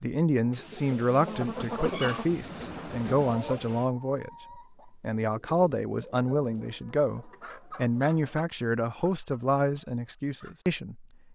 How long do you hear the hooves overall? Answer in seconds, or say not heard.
not heard.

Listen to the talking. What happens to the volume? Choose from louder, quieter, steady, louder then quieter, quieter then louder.
steady.